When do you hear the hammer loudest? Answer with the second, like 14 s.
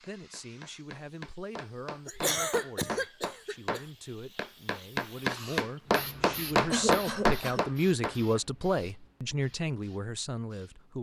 6 s.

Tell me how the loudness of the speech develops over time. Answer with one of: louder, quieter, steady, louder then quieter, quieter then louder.
louder.